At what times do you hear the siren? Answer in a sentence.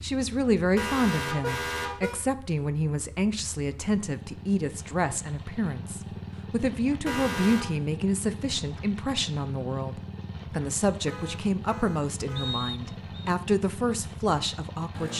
The siren can't be heard in this clip.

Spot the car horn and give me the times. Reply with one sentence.
The car horn can be heard from 0.8 to 2.2 s, from 7.0 to 7.7 s and from 10.9 to 12.6 s.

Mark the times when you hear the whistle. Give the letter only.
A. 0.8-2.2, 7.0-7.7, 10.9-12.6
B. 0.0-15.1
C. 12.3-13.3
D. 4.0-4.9
C.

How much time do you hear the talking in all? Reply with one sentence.
The talking can be heard for 15 seconds in total.